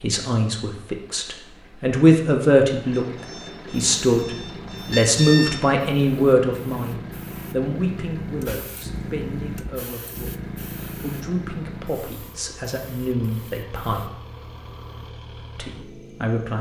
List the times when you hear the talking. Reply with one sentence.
You can hear the talking from 0.0 to 14.1 s and from 15.6 to 16.5 s.